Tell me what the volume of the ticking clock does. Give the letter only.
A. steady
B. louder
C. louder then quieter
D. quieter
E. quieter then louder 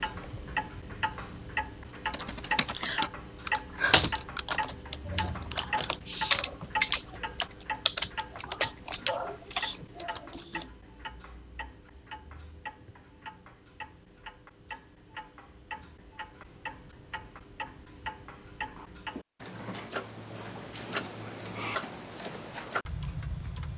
E.